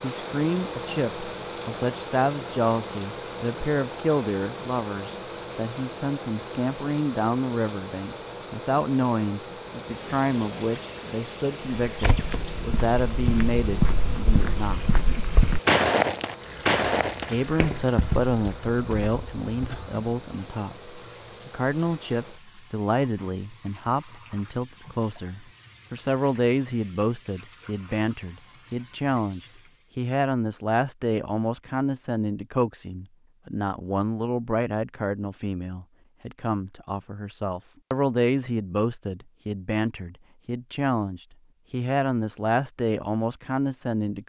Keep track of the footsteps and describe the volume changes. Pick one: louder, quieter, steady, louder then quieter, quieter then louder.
louder then quieter.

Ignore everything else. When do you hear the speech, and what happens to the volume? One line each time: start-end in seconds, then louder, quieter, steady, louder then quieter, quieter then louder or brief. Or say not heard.
0.0-14.8 steady
17.2-44.2 steady.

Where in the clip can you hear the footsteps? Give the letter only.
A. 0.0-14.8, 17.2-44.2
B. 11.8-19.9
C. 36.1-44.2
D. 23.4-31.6
B.